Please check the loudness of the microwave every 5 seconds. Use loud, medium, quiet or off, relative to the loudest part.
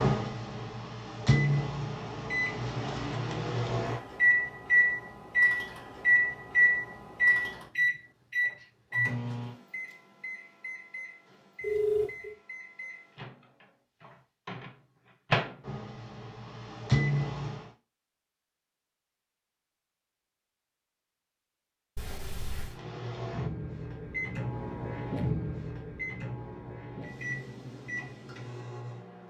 loud, loud, quiet, loud, medium, medium.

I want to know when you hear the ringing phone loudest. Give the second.
12 s.